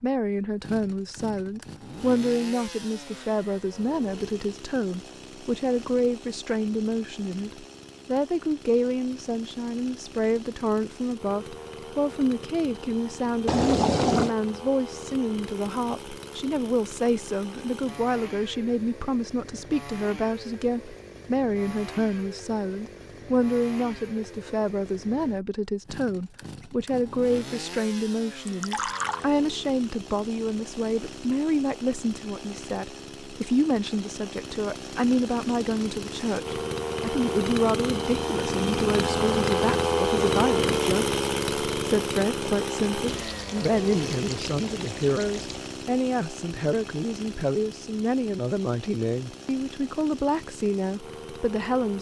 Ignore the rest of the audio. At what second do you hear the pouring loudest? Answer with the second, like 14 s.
14 s.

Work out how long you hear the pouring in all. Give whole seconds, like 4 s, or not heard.
4 s.